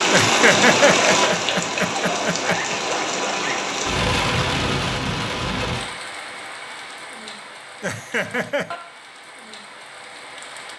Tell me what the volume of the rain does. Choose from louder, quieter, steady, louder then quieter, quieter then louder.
quieter.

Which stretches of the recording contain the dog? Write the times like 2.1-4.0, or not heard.
1.9-3.5.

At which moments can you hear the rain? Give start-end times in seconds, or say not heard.
0.0-10.7.